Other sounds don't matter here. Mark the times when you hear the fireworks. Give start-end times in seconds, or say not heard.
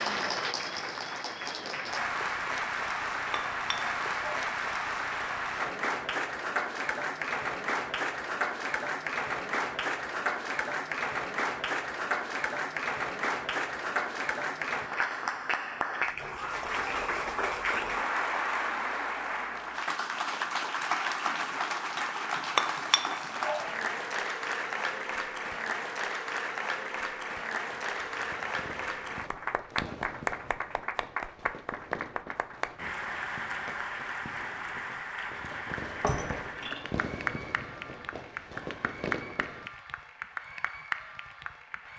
27.7-39.7.